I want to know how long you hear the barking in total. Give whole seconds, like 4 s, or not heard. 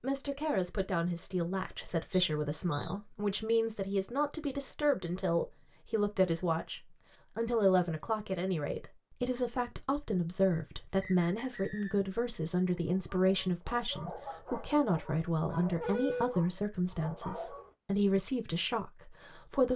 5 s.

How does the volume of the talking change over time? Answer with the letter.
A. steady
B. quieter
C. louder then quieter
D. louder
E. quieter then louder
A.